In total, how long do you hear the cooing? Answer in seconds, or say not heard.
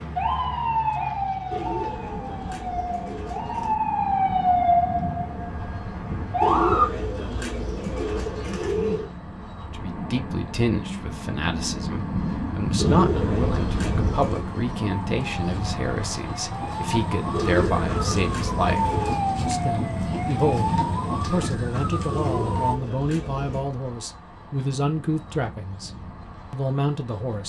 10 s.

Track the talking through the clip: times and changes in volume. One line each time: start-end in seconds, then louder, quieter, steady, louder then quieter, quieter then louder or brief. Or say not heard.
9.7-25.9 steady
26.5-27.4 brief.